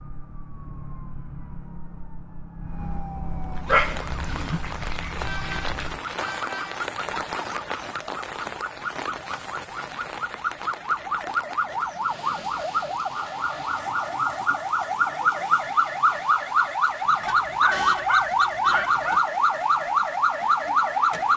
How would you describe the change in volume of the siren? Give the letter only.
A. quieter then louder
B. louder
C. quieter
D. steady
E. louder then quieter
B.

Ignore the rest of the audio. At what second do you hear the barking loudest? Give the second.
4 s.